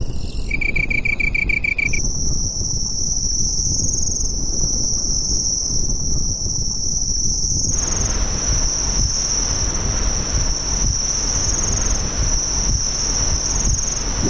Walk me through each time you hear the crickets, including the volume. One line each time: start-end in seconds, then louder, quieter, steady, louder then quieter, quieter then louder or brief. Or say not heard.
0.0-14.2 steady.